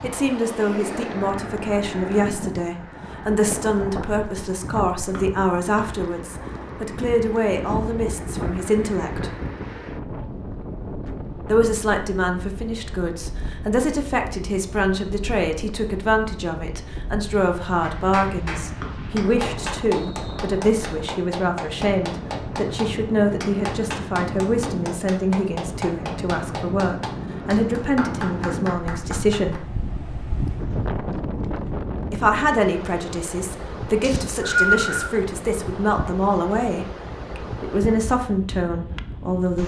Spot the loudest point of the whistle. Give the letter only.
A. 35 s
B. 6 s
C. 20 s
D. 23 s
A.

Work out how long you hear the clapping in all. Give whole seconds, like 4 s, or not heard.
12 s.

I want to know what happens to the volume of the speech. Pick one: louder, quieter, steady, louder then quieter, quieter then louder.
steady.